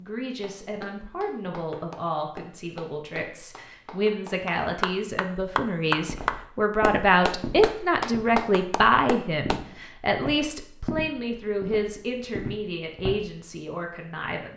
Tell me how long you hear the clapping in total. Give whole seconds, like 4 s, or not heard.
9 s.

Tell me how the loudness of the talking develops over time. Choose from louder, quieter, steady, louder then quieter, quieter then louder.
louder then quieter.